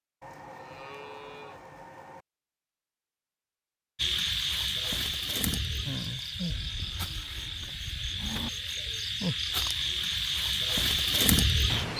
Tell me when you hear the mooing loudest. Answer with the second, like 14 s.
8 s.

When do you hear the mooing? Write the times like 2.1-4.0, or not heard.
0.2-2.2, 6.5-8.5.